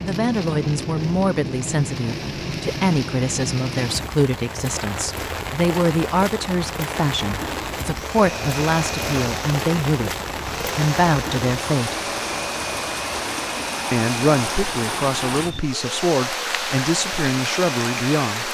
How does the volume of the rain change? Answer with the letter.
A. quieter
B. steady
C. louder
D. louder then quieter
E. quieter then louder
B.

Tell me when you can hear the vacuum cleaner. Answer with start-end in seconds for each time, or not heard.
7.9-18.4.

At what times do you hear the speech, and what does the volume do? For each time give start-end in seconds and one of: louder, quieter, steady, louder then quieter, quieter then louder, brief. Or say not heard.
0.0-11.9 steady
13.9-18.4 steady.